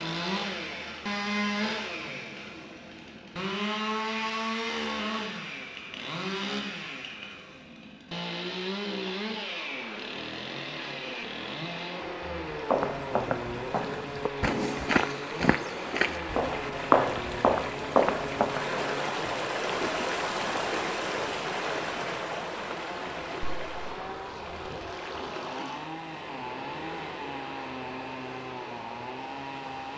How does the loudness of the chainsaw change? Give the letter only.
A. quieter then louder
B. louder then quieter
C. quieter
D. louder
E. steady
C.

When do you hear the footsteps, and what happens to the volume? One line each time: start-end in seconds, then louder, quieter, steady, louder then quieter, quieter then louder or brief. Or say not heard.
12.6-18.6 louder.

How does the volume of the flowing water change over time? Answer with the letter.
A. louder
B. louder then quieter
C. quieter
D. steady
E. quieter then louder
B.